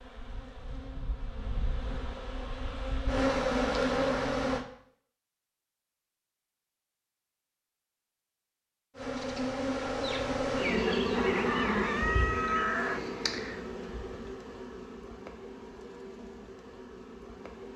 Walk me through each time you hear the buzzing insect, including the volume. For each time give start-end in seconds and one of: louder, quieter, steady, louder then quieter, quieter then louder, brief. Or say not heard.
0.0-4.7 louder
8.9-17.7 quieter.